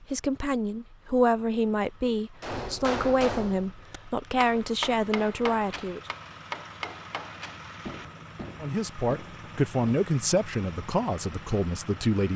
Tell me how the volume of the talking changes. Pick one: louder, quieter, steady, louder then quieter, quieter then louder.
steady.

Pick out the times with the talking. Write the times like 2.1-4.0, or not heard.
0.0-6.0, 8.6-12.3.